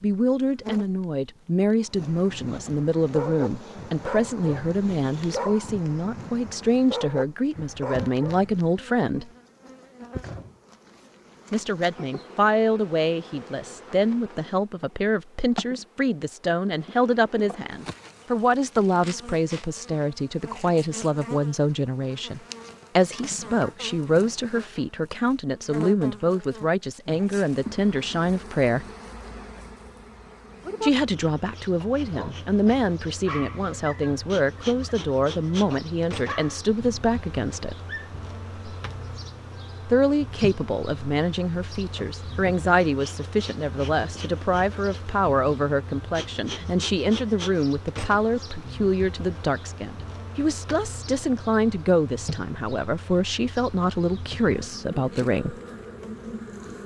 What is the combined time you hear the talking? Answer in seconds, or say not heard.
49 s.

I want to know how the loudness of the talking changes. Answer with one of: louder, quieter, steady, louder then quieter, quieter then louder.
steady.